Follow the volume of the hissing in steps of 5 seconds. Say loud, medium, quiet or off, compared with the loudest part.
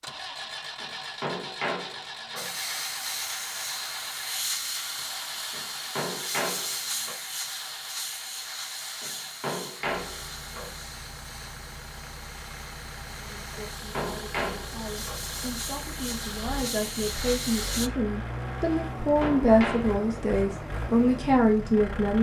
loud, loud, medium, loud, off.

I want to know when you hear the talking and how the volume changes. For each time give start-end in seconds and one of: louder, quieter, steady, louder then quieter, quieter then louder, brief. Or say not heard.
13.2-22.1 louder.